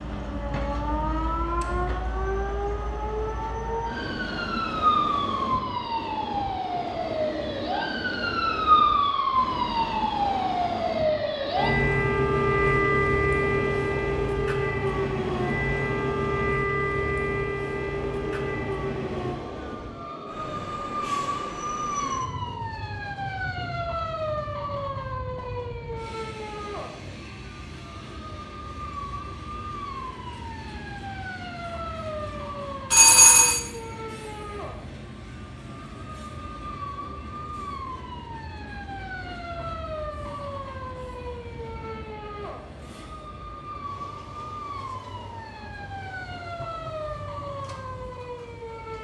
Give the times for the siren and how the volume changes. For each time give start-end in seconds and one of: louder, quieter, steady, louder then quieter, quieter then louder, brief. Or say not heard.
0.1-48.9 quieter.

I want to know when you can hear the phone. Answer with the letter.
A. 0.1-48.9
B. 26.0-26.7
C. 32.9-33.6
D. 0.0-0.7
C.